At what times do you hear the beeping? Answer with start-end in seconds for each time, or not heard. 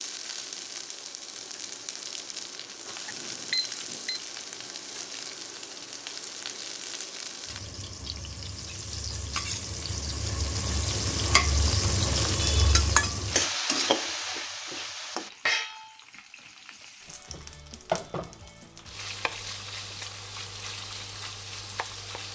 3.0-4.2.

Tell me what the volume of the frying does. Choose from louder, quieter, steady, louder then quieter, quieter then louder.
louder then quieter.